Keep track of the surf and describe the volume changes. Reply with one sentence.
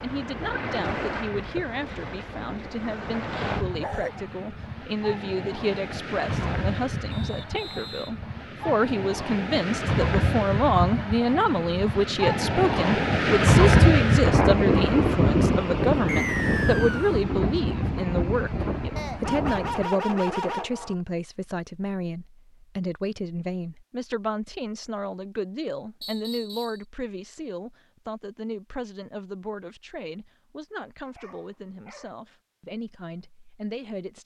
The loudness of the surf goes up, then down.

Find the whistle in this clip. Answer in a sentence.
The whistle can be heard from 7.1 to 8.2 s, from 16.1 to 17.2 s and from 26.0 to 26.9 s.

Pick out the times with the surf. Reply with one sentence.
The surf can be heard from 0.0 to 19.9 s.